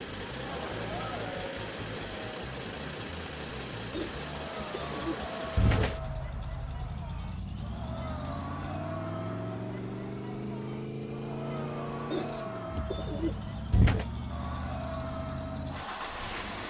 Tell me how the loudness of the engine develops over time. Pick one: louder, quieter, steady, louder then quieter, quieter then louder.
steady.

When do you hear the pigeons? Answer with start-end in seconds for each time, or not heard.
3.9-6.0, 12.1-14.1.